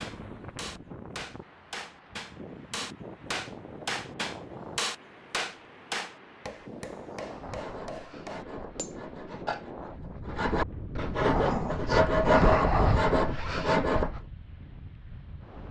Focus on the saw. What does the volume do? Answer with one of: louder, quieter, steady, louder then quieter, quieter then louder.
louder.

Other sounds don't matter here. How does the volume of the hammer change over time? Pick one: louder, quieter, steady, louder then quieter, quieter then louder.
louder then quieter.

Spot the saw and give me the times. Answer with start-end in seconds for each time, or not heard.
7.3-14.2.